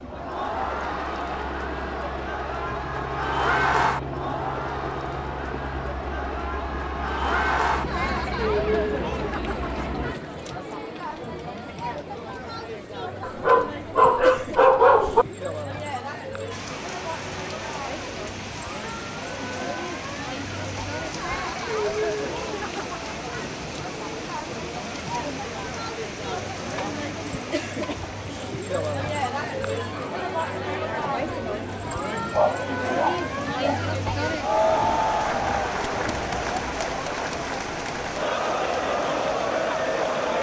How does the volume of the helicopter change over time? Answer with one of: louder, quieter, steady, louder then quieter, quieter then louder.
steady.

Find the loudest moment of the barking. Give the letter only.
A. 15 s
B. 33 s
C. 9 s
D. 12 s
A.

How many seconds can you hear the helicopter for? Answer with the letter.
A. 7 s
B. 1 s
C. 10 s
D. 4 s
C.